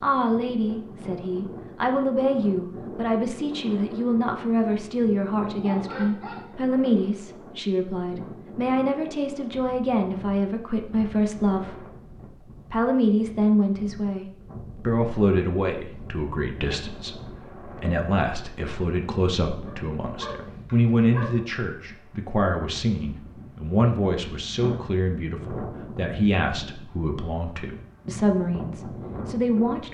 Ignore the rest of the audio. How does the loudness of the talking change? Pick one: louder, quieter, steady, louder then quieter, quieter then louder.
steady.